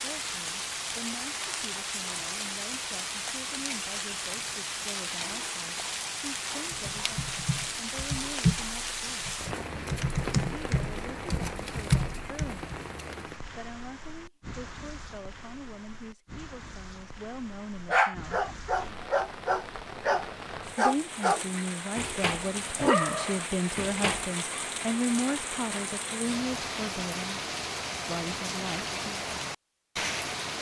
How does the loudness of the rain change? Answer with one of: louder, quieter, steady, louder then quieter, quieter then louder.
quieter then louder.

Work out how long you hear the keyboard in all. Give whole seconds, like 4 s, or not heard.
6 s.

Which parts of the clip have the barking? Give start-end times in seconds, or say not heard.
17.9-24.2.